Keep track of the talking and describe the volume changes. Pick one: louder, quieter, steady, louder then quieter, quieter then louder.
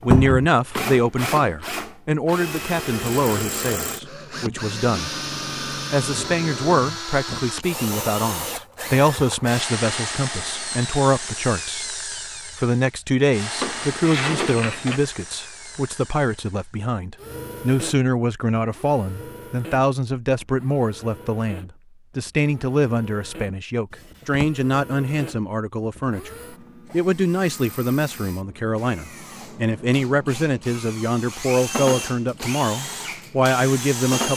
steady.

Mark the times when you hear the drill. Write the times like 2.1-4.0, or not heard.
0.0-34.3.